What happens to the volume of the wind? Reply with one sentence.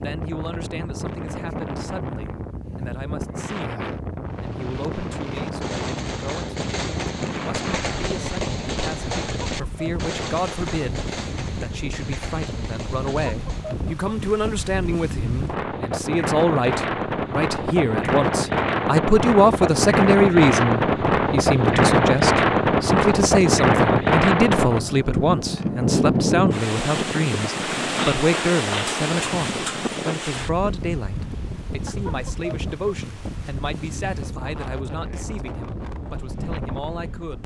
The loudness of the wind goes up, then down.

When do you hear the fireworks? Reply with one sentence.
You can hear the fireworks from 4.2 to 13.8 s.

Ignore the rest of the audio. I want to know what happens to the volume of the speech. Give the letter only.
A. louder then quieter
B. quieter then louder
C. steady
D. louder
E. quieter
A.